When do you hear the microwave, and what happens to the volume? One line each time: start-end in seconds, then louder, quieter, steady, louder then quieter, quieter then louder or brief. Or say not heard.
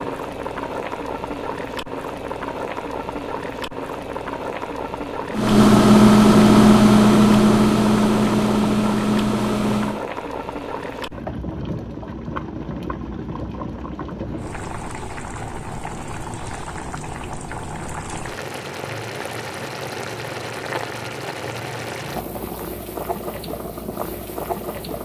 5.3-10.1 quieter.